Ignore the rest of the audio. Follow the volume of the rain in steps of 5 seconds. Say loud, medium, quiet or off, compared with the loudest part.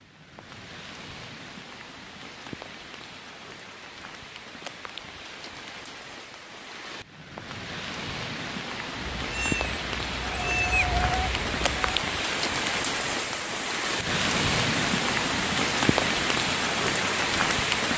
quiet, medium, loud, loud.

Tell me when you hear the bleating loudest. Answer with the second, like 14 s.
11 s.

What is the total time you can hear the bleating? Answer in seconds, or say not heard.
3 s.